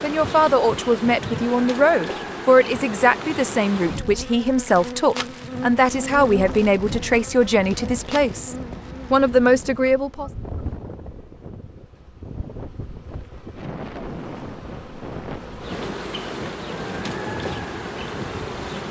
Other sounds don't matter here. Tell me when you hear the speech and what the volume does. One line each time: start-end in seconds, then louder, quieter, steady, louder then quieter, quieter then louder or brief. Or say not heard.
0.0-10.3 steady.